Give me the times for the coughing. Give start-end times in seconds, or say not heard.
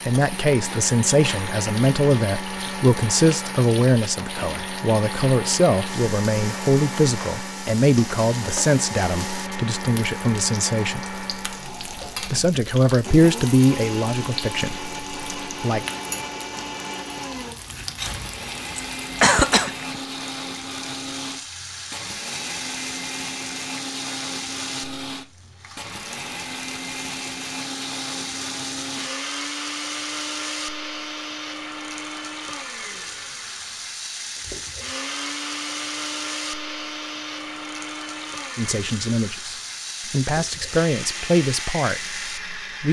18.3-20.0.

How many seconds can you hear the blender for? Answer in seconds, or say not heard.
43 s.